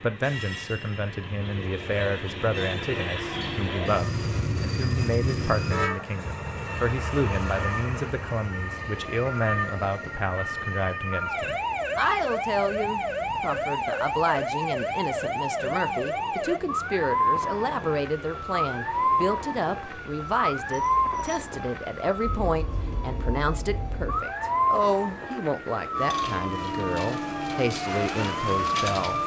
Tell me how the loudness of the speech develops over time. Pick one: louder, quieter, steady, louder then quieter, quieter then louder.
steady.